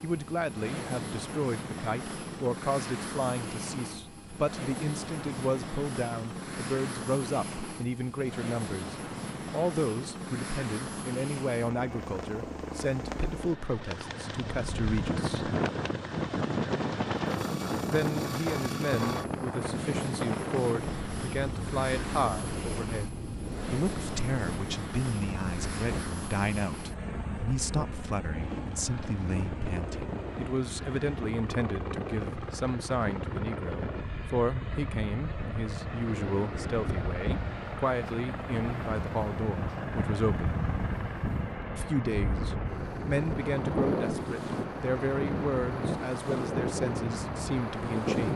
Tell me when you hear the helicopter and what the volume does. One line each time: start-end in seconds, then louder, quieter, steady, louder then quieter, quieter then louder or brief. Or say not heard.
0.0-48.3 steady.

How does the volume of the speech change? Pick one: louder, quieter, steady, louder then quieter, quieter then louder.
steady.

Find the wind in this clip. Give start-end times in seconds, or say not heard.
14.4-48.3.